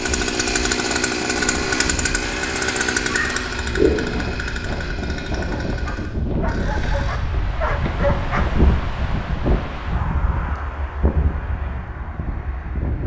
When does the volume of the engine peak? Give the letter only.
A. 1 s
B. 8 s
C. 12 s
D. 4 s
A.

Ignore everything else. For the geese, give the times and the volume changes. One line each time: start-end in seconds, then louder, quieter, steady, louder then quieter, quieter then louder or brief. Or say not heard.
not heard.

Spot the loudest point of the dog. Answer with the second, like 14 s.
8 s.